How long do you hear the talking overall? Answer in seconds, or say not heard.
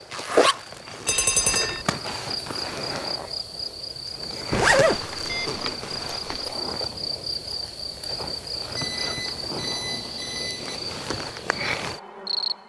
not heard.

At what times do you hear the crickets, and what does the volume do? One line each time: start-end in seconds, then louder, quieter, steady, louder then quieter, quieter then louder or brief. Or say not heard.
0.0-12.6 steady.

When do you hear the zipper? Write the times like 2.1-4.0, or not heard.
0.1-2.1, 4.5-5.0, 8.7-10.7.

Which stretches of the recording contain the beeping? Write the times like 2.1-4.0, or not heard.
1.1-1.9, 4.5-6.5, 8.8-10.8.